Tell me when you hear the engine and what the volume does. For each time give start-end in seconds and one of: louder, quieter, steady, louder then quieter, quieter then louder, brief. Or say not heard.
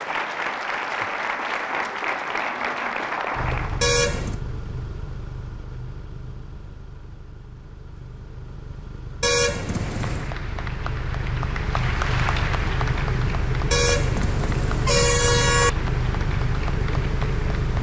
3.3-17.7 quieter then louder.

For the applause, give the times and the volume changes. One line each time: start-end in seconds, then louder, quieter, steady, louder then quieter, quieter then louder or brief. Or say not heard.
0.0-4.0 steady
9.7-17.7 louder then quieter.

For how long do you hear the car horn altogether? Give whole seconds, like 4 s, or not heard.
4 s.